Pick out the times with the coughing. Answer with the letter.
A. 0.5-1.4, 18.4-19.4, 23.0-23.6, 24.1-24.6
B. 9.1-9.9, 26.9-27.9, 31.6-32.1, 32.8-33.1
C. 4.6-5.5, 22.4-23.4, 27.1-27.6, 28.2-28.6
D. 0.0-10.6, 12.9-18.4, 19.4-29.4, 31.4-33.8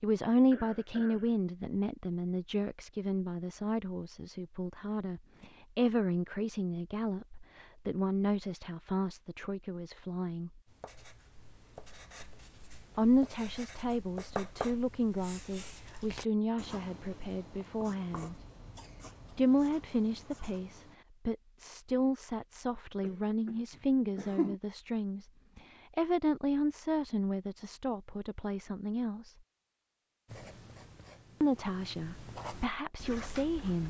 A.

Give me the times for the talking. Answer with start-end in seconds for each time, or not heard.
0.0-10.6, 12.9-18.4, 19.4-29.4, 31.4-33.8.